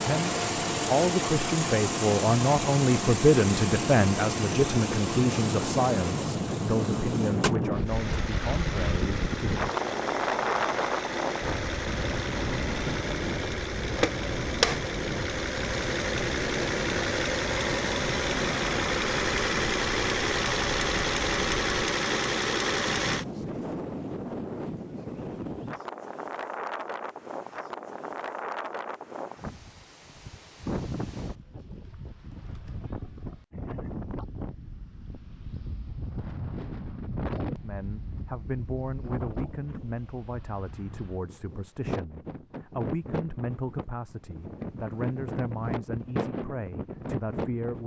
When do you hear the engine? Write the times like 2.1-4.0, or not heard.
0.0-23.2.